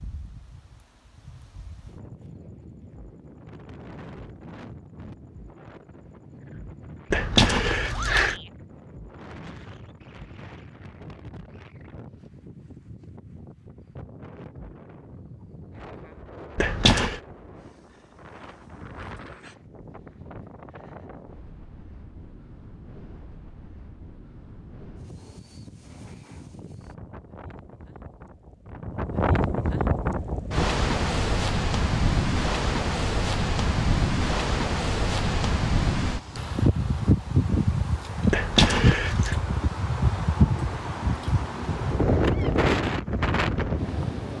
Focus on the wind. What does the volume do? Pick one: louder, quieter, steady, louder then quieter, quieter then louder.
louder.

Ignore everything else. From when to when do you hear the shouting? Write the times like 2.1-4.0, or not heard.
7.9-8.5.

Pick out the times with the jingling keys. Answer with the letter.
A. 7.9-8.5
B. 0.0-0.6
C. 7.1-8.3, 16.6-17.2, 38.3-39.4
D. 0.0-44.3
C.